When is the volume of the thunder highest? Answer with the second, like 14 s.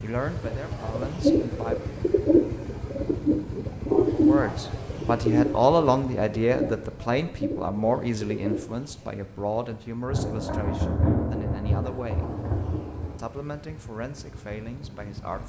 11 s.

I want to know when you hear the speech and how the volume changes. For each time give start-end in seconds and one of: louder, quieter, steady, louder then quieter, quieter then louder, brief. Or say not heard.
0.0-1.8 brief
4.1-12.3 quieter
13.2-15.4 brief.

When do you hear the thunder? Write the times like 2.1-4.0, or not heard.
10.1-13.2.